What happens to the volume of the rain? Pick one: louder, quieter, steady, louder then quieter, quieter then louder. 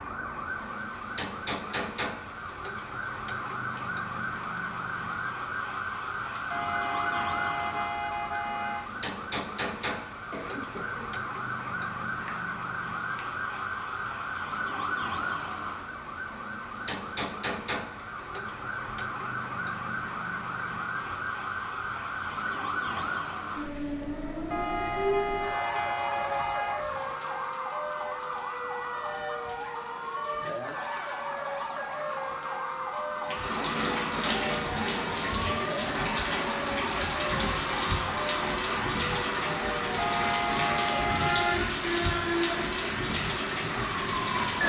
louder.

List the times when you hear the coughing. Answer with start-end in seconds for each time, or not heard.
10.3-11.2.